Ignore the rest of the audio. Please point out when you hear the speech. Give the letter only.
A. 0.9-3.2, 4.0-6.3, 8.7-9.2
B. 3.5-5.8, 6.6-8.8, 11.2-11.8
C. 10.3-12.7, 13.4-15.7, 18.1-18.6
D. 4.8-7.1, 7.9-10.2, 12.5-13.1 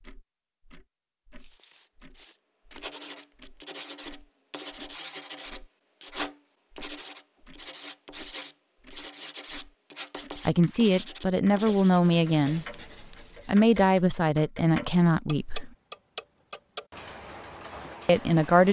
C.